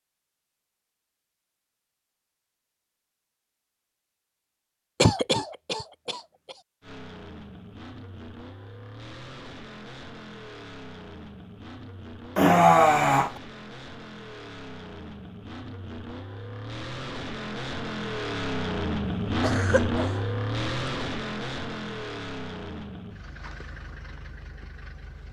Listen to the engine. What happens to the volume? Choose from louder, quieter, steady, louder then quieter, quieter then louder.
louder then quieter.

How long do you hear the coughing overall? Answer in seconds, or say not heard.
3 s.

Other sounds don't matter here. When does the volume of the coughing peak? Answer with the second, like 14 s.
13 s.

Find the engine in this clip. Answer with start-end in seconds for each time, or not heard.
6.8-25.2.